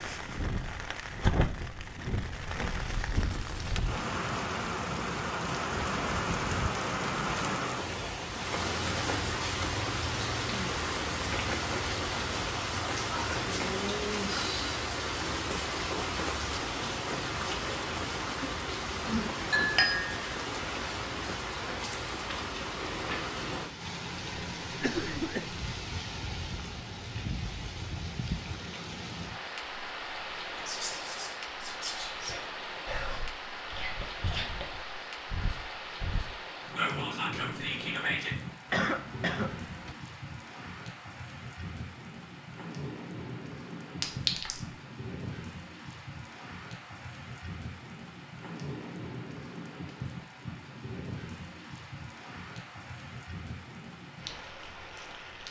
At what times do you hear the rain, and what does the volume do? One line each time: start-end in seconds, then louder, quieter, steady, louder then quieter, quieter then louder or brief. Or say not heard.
0.0-55.4 quieter.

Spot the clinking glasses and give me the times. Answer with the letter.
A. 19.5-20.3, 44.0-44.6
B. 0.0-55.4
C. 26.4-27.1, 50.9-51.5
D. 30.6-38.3
A.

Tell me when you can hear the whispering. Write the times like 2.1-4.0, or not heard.
30.6-38.3.